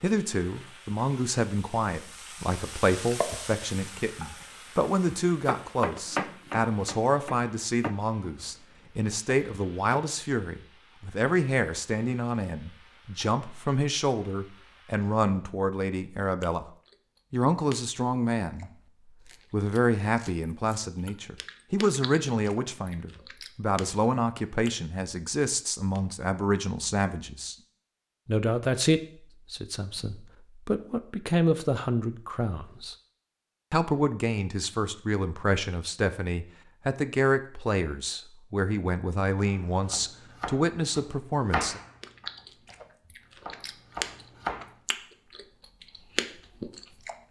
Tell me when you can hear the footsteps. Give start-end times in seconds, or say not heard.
not heard.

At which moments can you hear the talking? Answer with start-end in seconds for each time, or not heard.
0.0-16.6, 17.3-18.7, 19.5-27.6, 28.2-33.0, 33.7-41.8.